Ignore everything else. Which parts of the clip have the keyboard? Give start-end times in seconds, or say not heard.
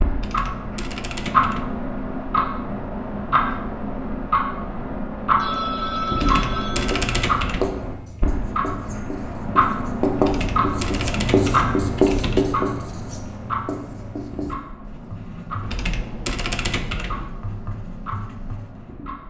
0.1-1.9, 6.1-7.8, 10.2-12.7, 15.6-17.3.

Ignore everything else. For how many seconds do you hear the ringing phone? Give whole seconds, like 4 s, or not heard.
2 s.